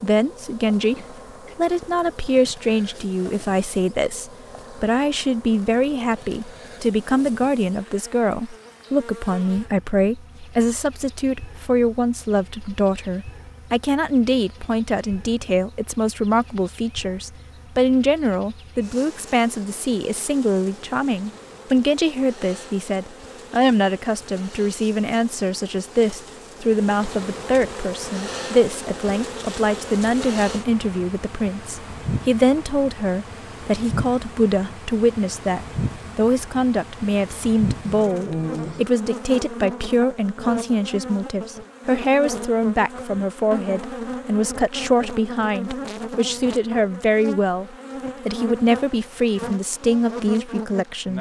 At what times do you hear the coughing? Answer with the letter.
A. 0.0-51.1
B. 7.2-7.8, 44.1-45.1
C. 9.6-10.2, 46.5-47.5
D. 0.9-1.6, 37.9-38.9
D.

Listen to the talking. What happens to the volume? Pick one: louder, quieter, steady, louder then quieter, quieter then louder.
steady.